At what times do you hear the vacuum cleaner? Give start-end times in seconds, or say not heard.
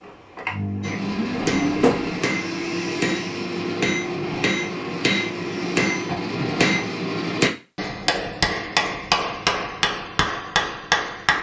0.0-6.8.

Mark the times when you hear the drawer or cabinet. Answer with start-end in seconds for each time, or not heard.
1.3-2.2.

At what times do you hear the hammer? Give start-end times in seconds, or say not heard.
0.8-11.3.